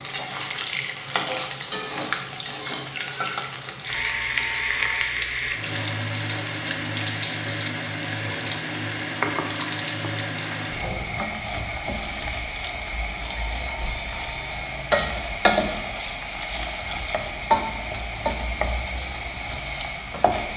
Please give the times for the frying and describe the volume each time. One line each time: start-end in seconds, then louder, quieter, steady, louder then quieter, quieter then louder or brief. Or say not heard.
0.0-20.5 steady.